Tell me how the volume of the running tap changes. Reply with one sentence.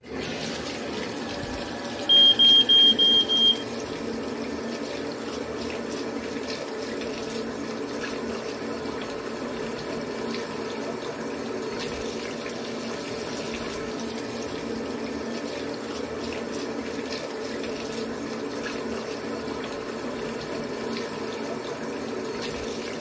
The volume of the running tap stays about the same.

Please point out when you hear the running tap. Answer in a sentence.
The running tap can be heard from 0.0 to 22.9 s.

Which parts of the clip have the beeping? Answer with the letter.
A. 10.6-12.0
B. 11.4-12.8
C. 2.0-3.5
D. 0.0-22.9
C.